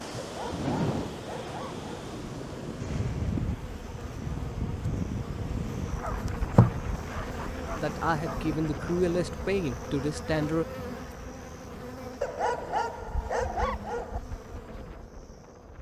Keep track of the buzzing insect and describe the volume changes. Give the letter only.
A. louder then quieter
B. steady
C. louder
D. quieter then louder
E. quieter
A.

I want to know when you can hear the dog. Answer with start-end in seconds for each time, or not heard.
0.2-2.1, 6.0-8.4, 12.2-14.2.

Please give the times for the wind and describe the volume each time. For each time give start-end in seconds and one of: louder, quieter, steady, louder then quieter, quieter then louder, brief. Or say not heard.
0.0-15.7 quieter.